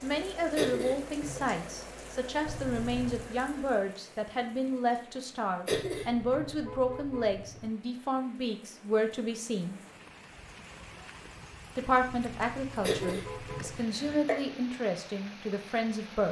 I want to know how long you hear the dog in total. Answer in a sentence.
The dog can't be heard in this clip.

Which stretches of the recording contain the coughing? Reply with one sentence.
You can hear the coughing from 0.6 to 1.6 s, from 5.7 to 6.5 s and from 12.8 to 14.3 s.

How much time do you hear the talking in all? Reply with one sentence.
The talking can be heard for 14 seconds in total.